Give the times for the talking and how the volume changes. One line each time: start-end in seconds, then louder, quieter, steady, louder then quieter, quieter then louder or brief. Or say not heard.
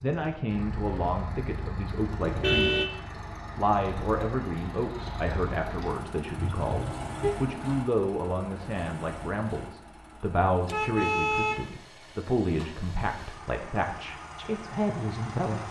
0.0-15.6 steady.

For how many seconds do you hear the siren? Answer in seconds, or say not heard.
not heard.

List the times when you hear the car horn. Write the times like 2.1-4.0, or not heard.
2.2-2.9, 6.4-7.3, 10.7-11.7.